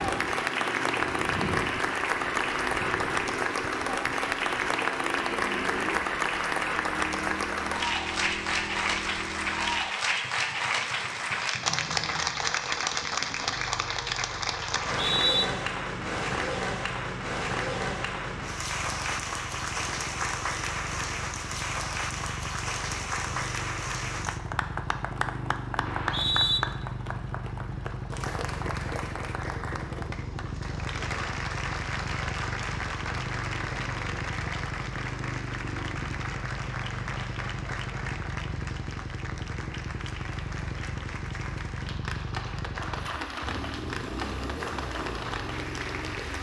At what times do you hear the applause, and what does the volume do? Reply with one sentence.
The applause can be heard from 0.0 to 46.3 s, getting quieter.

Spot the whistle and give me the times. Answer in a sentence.
You can hear the whistle from 14.7 to 15.4 s and from 25.9 to 26.6 s.